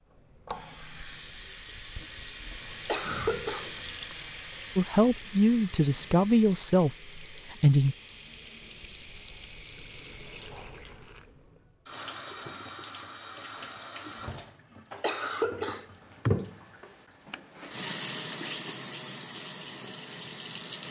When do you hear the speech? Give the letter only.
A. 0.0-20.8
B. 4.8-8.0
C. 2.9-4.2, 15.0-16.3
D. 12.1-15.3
B.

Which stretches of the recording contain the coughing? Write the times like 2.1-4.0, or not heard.
2.9-4.2, 15.0-16.3.